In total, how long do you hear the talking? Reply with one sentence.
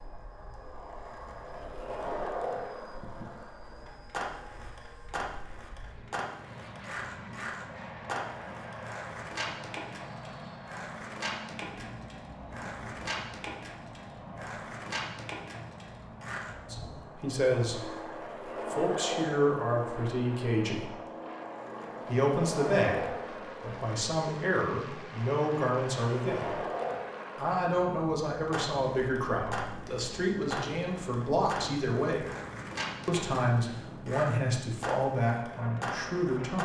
You can hear the talking for 17 seconds altogether.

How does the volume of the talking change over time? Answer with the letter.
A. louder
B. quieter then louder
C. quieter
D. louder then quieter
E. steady
E.